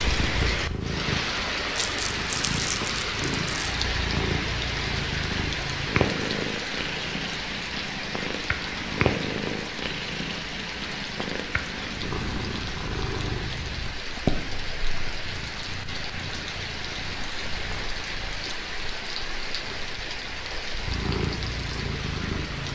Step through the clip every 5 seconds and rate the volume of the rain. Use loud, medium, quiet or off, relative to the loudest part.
loud, loud, medium, medium, medium.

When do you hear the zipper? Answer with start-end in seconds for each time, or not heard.
not heard.